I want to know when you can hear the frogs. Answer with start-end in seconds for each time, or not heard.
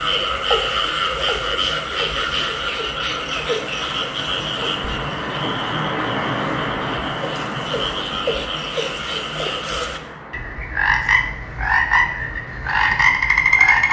0.0-13.8.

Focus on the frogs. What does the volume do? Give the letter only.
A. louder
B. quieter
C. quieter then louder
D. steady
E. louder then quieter
C.